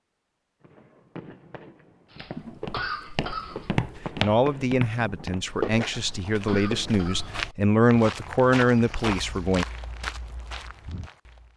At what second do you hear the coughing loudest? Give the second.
3 s.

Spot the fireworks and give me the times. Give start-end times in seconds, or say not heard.
0.6-7.0.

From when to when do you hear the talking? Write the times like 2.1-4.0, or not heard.
4.2-9.7.